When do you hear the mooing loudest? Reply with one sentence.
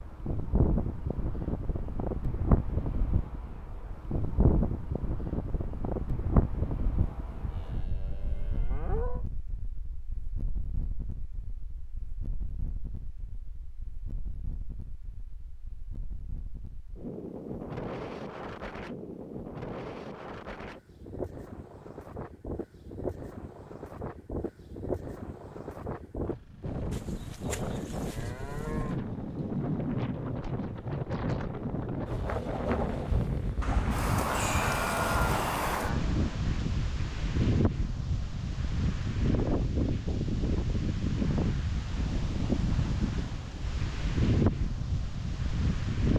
The loudest moment of the mooing is at 35 seconds.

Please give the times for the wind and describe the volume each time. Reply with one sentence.
The wind can be heard from 0.0 to 46.1 s, getting quieter then louder.